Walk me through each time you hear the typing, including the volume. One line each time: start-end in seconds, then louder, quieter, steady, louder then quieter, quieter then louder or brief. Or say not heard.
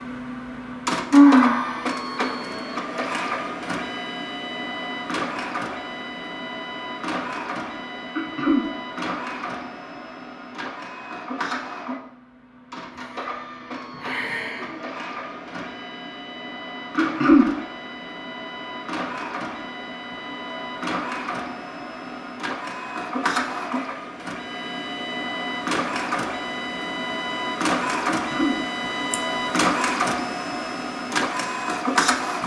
not heard.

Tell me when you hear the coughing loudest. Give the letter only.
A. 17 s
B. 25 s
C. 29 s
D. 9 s
A.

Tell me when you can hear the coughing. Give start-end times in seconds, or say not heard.
8.2-8.7, 16.9-17.4, 28.1-28.6.